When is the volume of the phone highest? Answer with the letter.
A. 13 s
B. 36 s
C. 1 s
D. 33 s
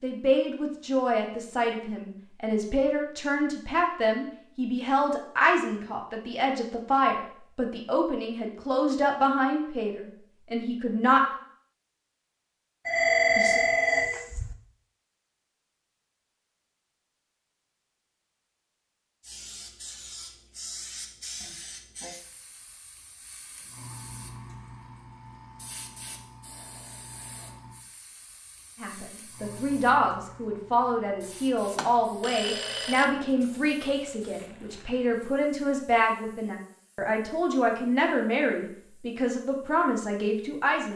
A.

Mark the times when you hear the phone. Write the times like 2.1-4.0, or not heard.
12.8-14.6, 31.8-33.0.